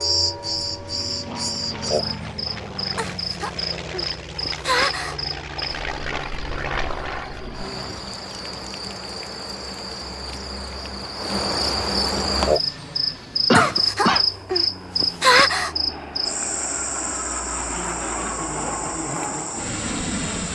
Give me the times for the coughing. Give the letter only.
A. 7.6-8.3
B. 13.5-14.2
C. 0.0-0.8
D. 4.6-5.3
B.